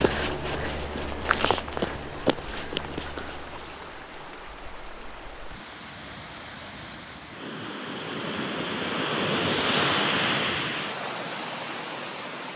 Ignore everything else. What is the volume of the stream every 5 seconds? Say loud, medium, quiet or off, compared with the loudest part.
quiet, loud, loud.